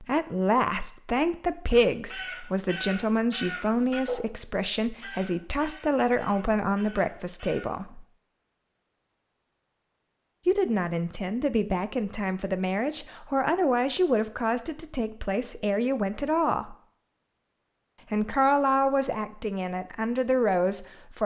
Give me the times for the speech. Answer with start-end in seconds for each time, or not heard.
0.0-8.1, 10.4-16.8, 18.1-21.2.